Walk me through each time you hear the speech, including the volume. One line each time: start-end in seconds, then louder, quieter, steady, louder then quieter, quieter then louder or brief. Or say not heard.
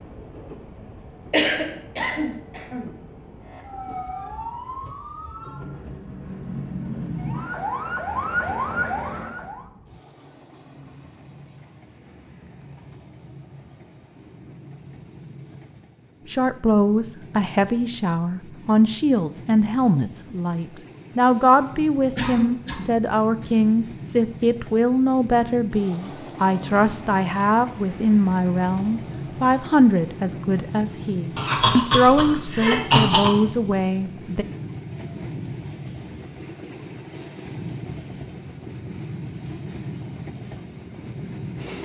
16.3-34.5 steady.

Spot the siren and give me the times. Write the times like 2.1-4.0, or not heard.
3.4-9.7.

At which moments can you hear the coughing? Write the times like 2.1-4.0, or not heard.
1.3-2.9, 22.1-23.4, 31.4-33.3.